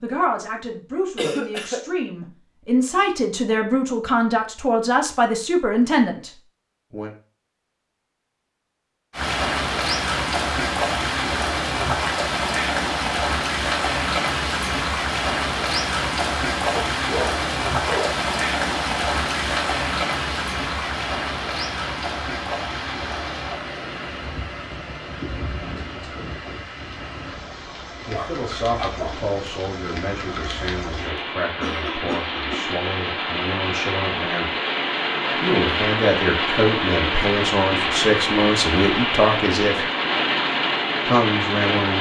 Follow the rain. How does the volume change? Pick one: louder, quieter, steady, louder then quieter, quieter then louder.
quieter then louder.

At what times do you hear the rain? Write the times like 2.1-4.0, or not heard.
9.1-41.9.